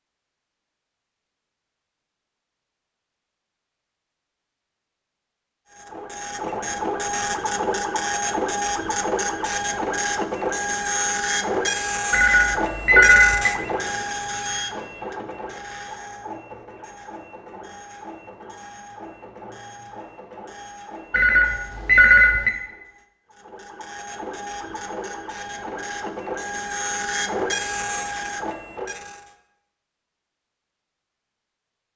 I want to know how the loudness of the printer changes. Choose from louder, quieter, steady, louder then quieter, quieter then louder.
quieter then louder.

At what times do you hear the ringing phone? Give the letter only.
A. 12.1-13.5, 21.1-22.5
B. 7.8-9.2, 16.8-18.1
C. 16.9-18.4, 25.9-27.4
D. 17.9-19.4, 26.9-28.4
A.